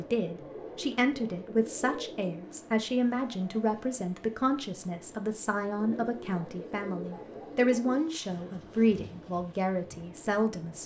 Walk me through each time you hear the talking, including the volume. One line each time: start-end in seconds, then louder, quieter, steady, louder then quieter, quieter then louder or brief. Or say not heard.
0.0-10.8 steady.